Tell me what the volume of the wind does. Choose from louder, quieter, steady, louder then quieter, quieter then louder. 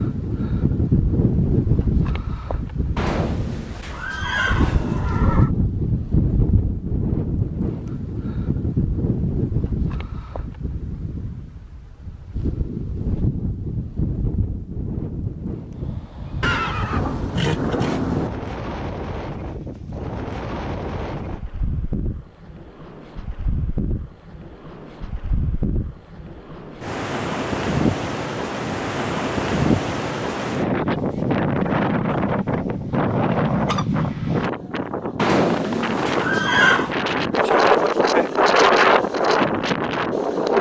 quieter then louder.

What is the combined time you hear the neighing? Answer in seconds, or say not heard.
6 s.